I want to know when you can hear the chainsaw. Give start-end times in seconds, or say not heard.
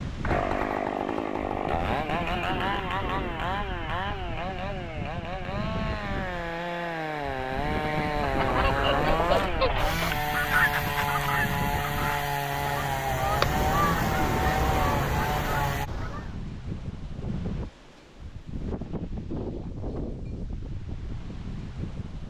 0.2-15.9.